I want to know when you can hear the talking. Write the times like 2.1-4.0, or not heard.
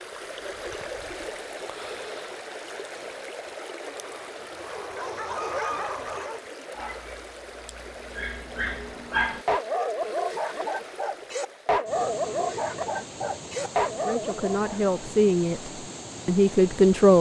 14.1-17.1.